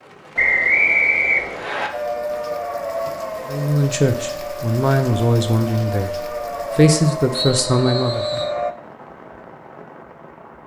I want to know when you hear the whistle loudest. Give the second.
1 s.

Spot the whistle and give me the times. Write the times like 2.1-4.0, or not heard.
0.3-1.9, 7.3-8.5.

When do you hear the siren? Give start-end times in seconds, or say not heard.
1.9-8.8.